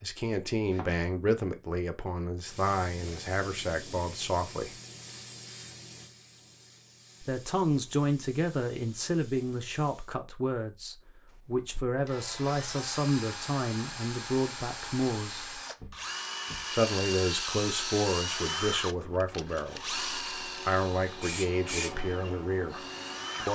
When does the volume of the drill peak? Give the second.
18 s.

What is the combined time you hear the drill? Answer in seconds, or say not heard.
12 s.